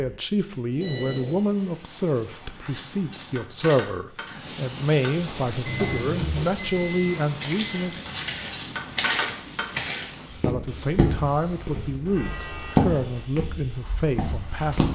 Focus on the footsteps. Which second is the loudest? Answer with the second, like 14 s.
13 s.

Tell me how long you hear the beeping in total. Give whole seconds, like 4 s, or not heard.
4 s.